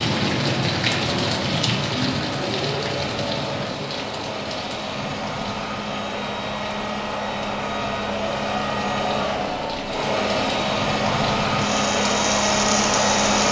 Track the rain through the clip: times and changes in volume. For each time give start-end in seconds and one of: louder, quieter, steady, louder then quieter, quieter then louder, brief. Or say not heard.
0.0-13.4 quieter then louder.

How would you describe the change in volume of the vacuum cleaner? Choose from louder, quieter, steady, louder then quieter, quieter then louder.
louder.